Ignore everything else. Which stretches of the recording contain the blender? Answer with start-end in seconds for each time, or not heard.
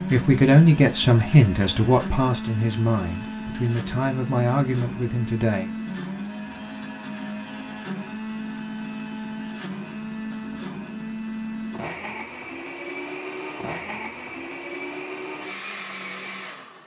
0.0-16.8.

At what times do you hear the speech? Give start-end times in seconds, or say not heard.
0.0-5.7.